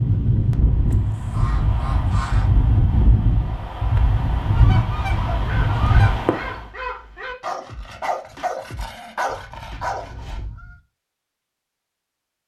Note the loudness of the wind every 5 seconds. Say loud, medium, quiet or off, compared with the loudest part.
loud, loud, off.